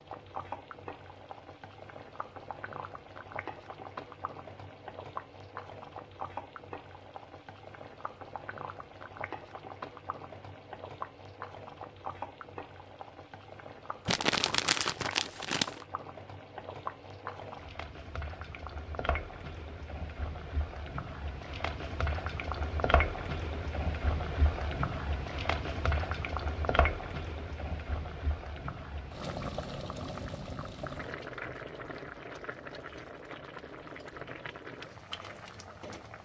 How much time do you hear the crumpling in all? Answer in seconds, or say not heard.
2 s.